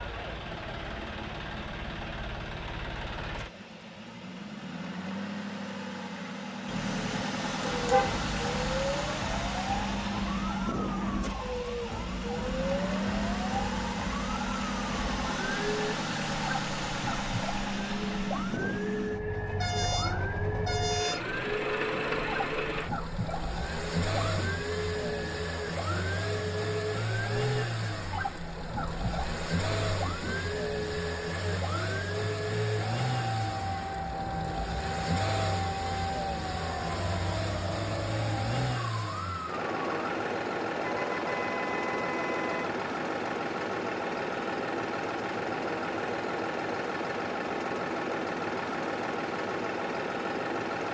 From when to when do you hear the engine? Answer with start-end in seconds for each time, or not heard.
0.0-50.8.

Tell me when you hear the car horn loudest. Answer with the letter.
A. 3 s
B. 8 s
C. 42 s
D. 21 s
B.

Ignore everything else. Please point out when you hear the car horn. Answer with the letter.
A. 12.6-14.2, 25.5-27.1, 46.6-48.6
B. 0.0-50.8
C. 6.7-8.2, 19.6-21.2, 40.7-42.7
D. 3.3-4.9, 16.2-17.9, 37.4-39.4
C.